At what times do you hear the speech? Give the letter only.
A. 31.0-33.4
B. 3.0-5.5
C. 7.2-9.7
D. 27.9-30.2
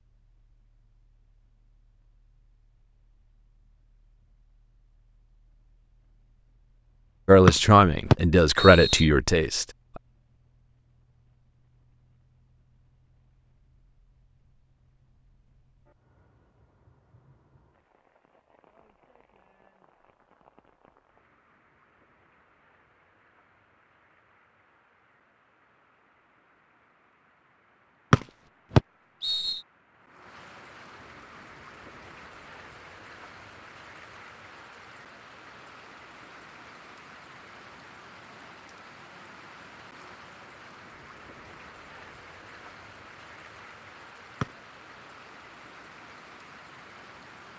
C.